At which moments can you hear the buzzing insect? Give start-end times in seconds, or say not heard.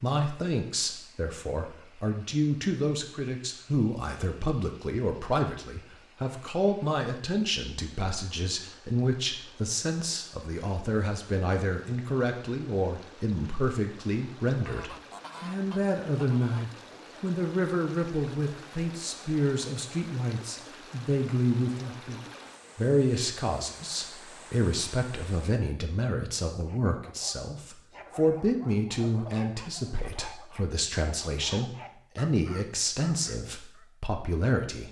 not heard.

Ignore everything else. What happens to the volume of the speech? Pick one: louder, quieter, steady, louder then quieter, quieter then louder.
steady.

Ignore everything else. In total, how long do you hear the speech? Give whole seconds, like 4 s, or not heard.
35 s.